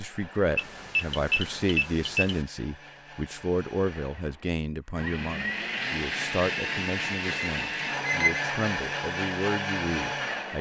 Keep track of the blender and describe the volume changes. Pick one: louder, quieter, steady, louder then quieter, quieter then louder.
louder.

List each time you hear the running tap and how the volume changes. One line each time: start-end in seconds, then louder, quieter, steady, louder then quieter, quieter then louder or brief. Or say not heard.
not heard.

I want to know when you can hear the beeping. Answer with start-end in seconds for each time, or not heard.
0.6-2.4, 7.2-8.4.